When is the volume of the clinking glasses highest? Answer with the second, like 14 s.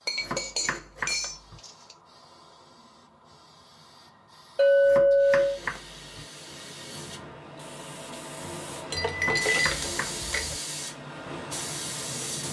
5 s.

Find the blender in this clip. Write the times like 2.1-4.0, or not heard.
not heard.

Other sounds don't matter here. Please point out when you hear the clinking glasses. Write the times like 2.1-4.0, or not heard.
0.1-1.7, 4.5-5.6, 8.9-10.6.